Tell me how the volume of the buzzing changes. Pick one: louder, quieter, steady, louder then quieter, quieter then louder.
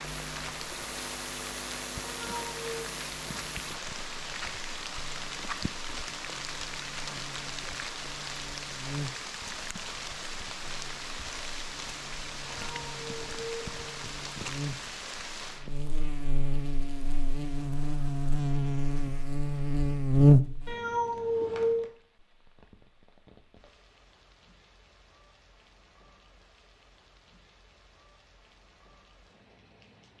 quieter then louder.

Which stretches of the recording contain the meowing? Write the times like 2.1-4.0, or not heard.
2.0-3.0, 12.4-14.0, 20.6-21.9.